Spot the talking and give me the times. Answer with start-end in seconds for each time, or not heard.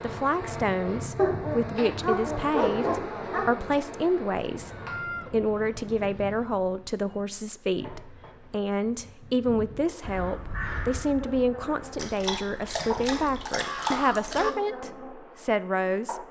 0.0-4.7, 5.3-16.2.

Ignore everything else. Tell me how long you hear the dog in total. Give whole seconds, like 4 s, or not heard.
5 s.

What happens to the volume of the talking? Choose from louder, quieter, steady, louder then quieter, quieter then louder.
steady.